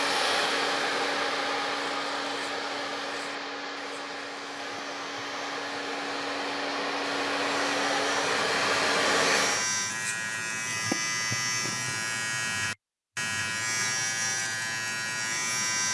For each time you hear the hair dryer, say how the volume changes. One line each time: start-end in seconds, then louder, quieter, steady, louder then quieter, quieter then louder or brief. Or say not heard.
0.0-9.7 quieter then louder.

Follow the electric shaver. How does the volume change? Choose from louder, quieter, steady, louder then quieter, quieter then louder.
louder.